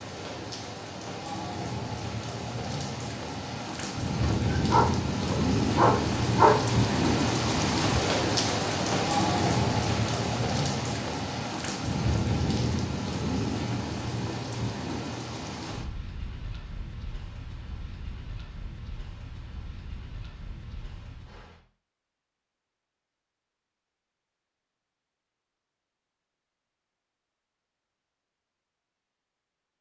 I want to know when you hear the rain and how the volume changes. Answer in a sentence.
You can hear the rain from 0.0 to 21.6 s, getting louder then quieter.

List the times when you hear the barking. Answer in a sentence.
The barking can be heard from 4.2 to 6.7 s.